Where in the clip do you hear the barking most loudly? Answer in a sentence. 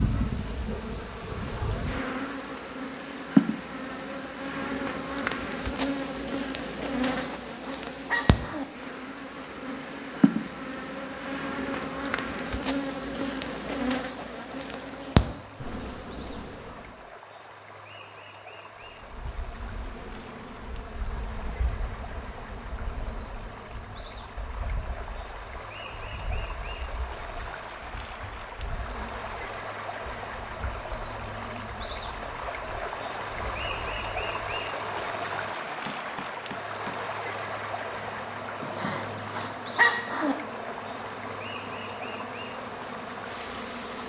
The volume of the barking peaks at 40 seconds.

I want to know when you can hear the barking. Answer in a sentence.
The barking can be heard from 7.0 to 8.7 s and from 38.6 to 40.4 s.